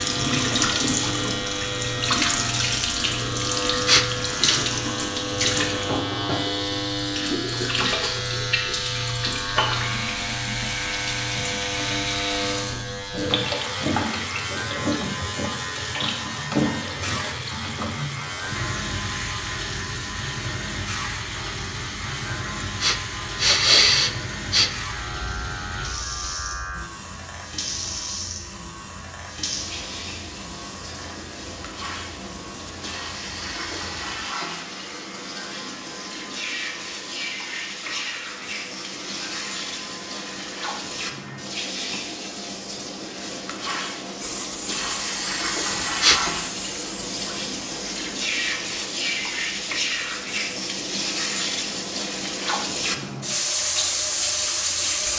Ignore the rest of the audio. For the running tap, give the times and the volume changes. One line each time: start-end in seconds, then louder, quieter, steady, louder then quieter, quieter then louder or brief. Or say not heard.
0.0-55.1 quieter then louder.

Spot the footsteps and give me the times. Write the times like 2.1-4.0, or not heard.
not heard.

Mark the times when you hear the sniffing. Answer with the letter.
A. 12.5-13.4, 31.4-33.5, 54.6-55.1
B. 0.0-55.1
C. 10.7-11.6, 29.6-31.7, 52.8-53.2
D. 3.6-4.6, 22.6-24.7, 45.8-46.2
D.